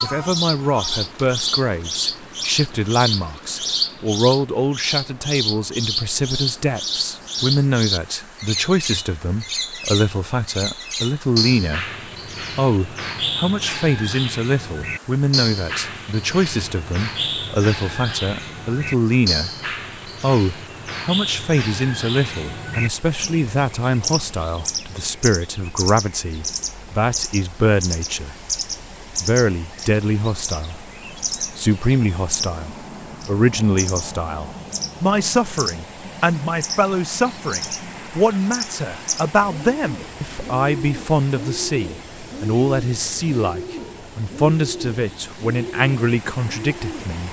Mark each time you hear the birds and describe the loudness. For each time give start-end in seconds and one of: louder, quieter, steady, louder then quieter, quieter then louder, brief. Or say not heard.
0.0-47.2 quieter.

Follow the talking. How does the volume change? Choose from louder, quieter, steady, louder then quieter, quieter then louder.
steady.